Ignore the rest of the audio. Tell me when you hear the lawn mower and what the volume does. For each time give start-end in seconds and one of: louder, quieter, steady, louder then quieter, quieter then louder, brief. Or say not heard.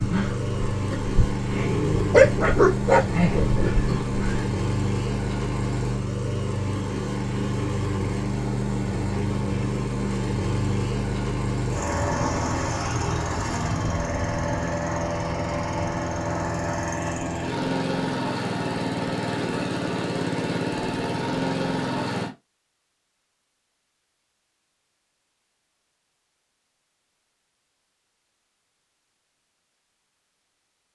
0.0-22.3 steady.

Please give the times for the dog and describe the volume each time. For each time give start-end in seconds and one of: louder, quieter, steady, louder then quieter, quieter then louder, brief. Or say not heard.
0.0-4.5 louder then quieter.